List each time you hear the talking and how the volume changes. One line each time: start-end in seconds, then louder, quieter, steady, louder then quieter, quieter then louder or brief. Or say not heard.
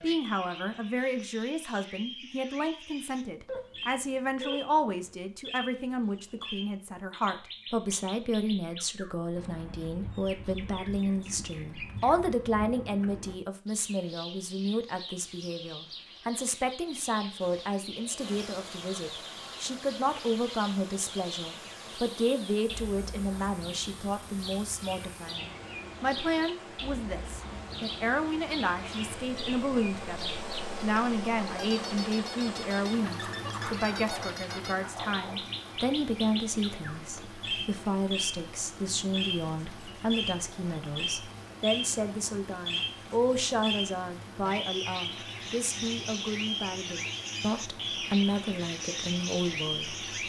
0.0-50.1 steady.